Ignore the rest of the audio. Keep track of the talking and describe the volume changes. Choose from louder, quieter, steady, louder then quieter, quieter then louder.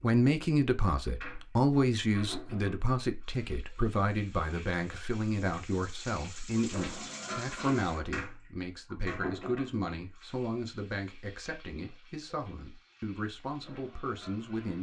quieter.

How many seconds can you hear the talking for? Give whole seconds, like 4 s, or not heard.
15 s.